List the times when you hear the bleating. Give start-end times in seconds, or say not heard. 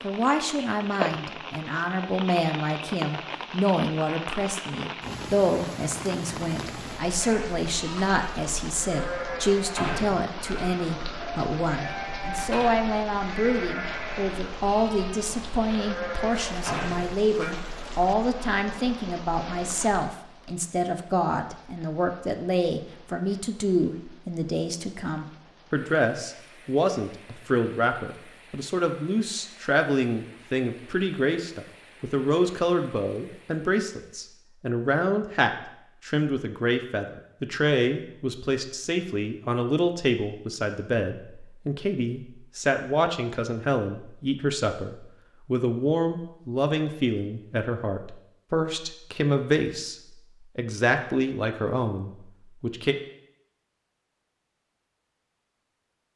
7.2-17.5.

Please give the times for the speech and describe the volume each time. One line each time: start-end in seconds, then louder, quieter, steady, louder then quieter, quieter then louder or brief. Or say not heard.
0.0-53.0 steady.